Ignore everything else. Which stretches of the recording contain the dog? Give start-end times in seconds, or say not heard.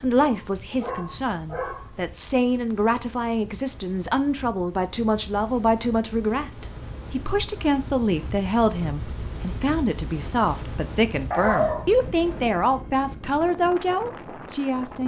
0.2-1.9, 11.3-12.4.